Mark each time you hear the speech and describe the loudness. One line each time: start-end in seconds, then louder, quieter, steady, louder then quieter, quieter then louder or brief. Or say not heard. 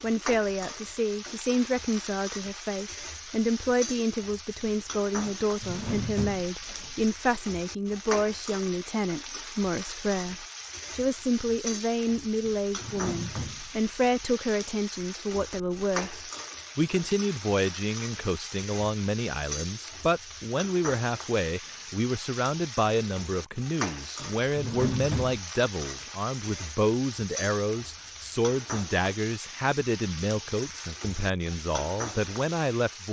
0.0-33.0 steady.